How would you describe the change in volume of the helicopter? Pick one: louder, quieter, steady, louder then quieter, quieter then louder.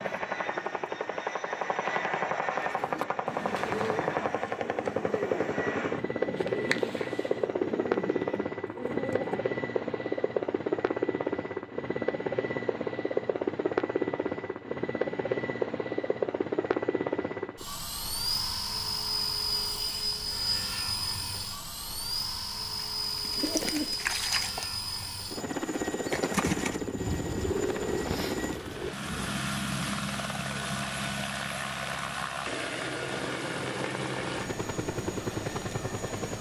steady.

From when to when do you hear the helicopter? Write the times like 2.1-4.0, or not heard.
0.0-36.3.